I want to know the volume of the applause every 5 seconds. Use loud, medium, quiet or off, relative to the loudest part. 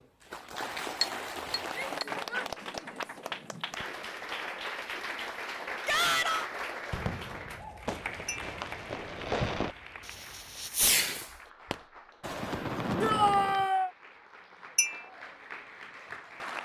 loud, loud, quiet, medium.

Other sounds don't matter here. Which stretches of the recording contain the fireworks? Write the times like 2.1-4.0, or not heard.
6.9-13.7.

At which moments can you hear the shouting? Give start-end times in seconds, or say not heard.
1.7-3.0, 5.8-6.5, 13.0-13.9.